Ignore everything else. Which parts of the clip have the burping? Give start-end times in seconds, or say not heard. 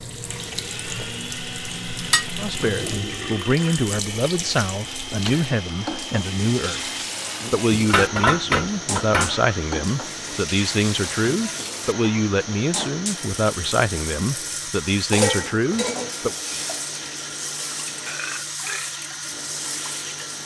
2.6-3.5, 17.9-18.9.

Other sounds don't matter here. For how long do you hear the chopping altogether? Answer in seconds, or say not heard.
not heard.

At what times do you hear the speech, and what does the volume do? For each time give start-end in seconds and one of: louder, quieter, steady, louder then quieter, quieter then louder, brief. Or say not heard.
2.4-16.4 steady.